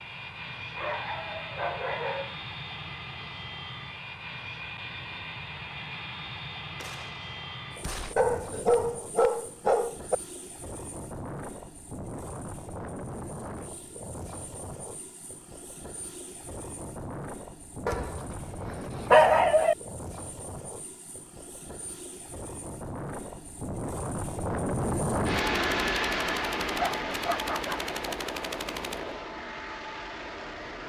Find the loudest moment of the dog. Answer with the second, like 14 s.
19 s.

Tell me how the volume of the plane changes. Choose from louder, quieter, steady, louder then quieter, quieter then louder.
louder.